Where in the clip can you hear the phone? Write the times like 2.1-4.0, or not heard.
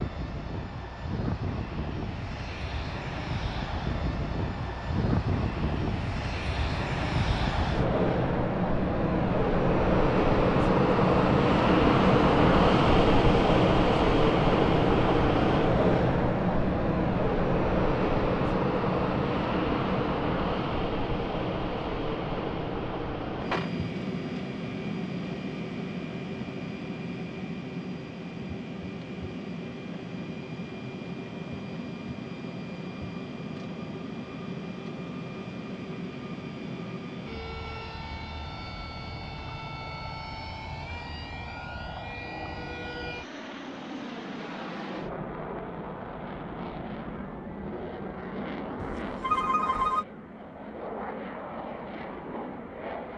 48.8-50.0.